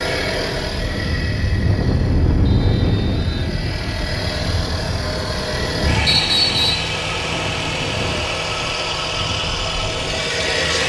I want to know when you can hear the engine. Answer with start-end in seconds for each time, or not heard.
0.0-10.8.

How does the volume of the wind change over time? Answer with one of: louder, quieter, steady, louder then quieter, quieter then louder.
quieter.